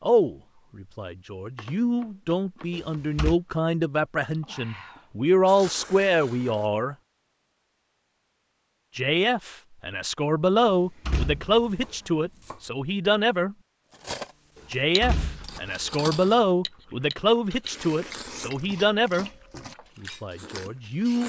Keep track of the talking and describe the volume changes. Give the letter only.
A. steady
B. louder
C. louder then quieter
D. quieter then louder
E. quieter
A.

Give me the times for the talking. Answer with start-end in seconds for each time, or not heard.
0.0-7.0, 8.9-13.6, 14.7-21.2.